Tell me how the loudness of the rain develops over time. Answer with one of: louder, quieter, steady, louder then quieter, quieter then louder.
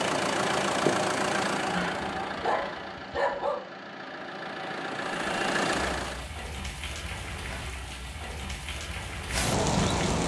louder.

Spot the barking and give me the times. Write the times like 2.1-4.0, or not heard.
1.6-3.6.